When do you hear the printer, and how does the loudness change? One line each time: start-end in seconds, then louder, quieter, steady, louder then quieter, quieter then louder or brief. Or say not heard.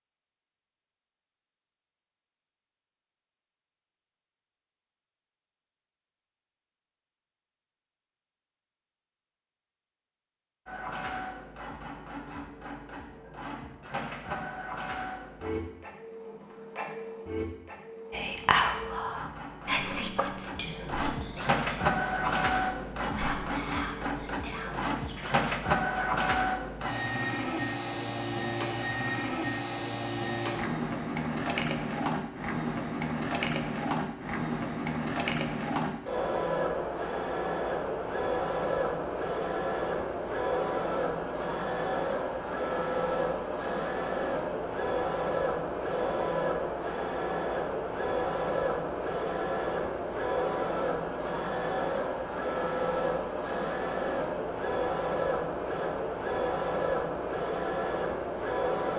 10.7-58.9 louder.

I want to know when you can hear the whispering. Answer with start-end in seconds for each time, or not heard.
18.1-26.1.